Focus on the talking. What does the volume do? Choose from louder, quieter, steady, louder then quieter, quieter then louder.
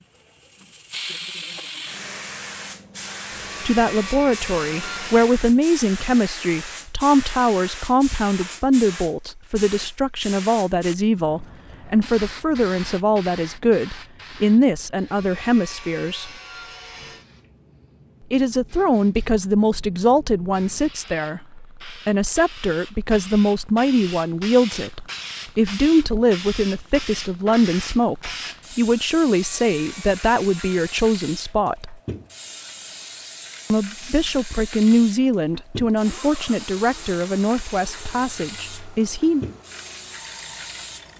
steady.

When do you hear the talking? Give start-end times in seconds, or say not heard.
3.6-16.3, 18.3-31.9, 33.7-39.5.